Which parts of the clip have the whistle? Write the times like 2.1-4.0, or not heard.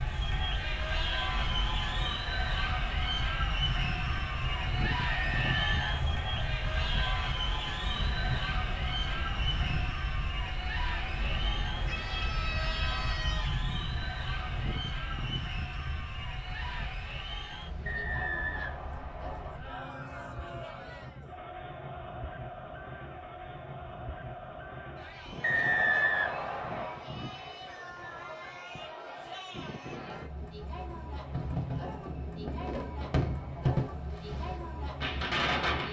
5.1-6.5, 17.9-19.6, 25.4-26.9.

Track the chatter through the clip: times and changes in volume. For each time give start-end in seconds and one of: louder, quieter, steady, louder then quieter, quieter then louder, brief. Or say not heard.
0.0-35.8 quieter.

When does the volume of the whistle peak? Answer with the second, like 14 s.
26 s.